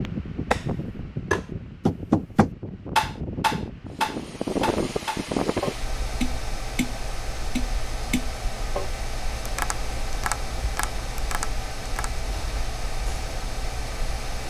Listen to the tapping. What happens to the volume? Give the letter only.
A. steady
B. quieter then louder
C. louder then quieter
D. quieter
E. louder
D.